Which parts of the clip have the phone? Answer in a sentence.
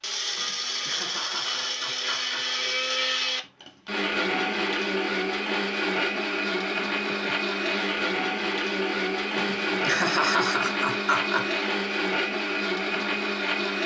You can't hear the phone here.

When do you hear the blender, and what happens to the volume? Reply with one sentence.
The blender can be heard from 0.0 to 13.8 s, at a steady volume.